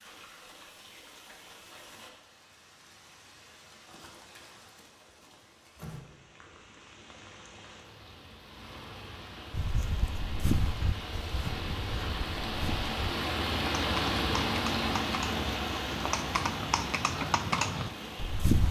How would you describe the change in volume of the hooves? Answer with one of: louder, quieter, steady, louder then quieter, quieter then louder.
quieter then louder.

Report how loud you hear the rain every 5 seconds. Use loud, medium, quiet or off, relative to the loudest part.
quiet, quiet, loud, loud.